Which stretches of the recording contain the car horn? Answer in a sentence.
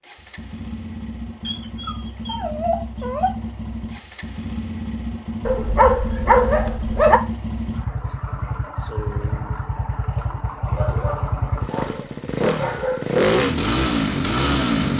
You can't hear the car horn here.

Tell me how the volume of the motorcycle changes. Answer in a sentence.
The loudness of the motorcycle goes up.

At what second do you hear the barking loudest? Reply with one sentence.
The volume of the barking peaks at 6 seconds.